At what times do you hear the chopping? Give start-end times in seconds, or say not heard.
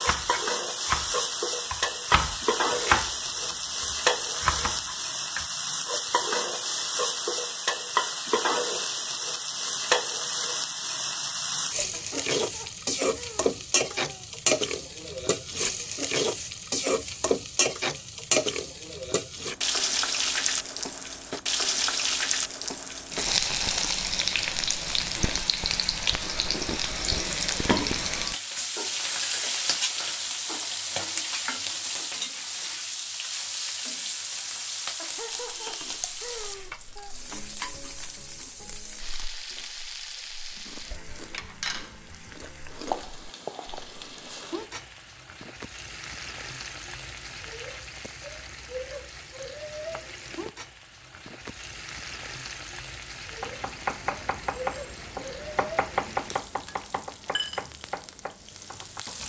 0.0-5.5, 53.4-59.2.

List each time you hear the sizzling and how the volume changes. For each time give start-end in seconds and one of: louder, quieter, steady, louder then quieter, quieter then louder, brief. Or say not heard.
0.0-59.2 quieter.